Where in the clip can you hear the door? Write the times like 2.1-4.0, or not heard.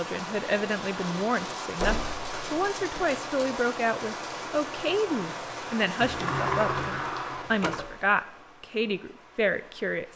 1.8-3.5, 6.0-8.0.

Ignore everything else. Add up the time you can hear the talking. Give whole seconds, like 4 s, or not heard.
10 s.